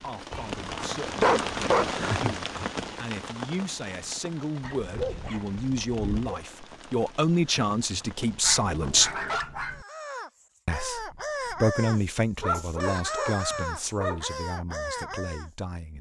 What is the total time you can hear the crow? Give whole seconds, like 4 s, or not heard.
6 s.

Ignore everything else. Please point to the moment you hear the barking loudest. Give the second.
1 s.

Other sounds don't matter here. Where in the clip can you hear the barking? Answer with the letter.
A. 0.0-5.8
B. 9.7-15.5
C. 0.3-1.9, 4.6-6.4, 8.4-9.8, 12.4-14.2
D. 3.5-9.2
C.